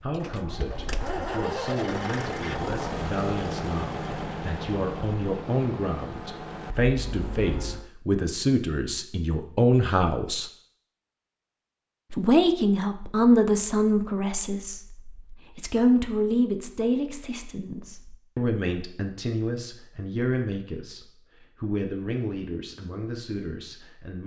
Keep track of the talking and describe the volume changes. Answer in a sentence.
The loudness of the talking goes up, then down.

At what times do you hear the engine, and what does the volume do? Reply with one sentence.
The engine can be heard from 0.0 to 7.9 s, getting quieter.